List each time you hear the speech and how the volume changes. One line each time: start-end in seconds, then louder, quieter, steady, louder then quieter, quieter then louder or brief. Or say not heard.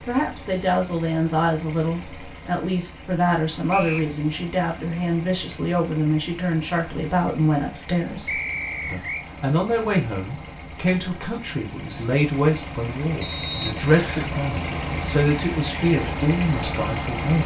0.1-17.4 steady.